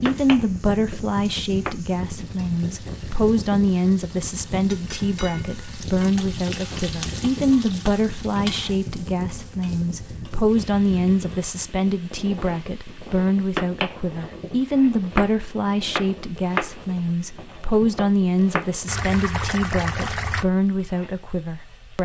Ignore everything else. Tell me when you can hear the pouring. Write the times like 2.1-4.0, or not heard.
18.9-20.4.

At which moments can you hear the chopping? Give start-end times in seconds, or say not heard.
0.0-1.8, 12.9-18.8.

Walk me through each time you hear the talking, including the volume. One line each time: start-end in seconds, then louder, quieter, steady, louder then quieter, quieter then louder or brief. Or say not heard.
0.0-22.0 steady.